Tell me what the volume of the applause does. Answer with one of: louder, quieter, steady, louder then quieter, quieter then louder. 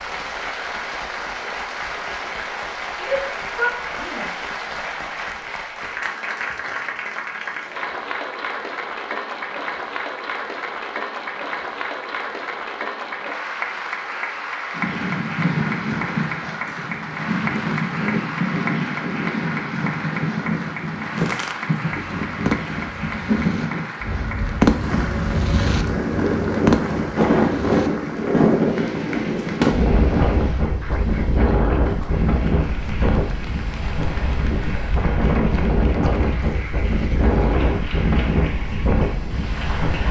quieter.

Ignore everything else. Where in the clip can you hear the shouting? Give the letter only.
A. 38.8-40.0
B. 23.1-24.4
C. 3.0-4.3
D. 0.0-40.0
C.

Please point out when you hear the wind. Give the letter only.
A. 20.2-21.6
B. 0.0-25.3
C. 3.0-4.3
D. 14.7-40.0
D.